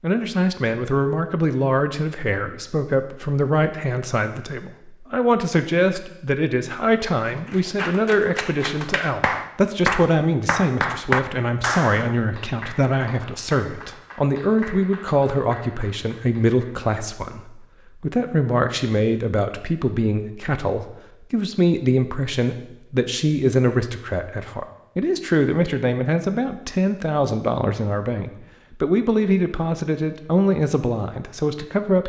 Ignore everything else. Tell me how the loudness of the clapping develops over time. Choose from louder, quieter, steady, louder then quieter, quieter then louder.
louder then quieter.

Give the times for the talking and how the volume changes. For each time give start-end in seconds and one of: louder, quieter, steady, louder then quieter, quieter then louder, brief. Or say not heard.
0.0-32.0 steady.